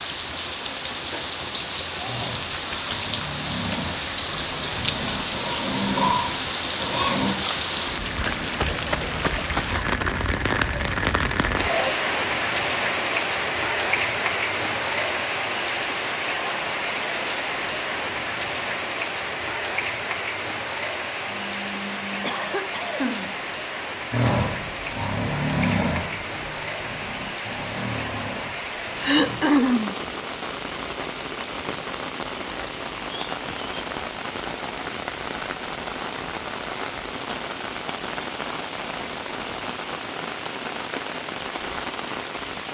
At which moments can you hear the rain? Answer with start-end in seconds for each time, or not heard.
0.0-42.6.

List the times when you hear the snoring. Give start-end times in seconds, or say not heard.
2.0-7.3, 24.1-29.4.